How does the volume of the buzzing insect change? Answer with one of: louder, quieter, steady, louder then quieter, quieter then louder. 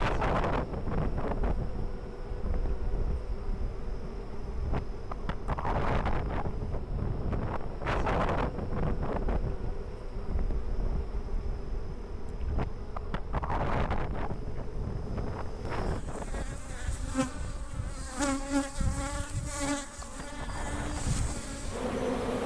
louder.